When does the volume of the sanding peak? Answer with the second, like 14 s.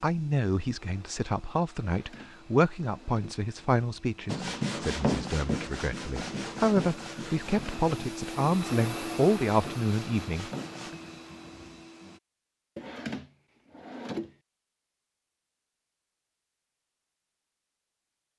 5 s.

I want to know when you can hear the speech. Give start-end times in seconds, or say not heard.
0.0-11.0.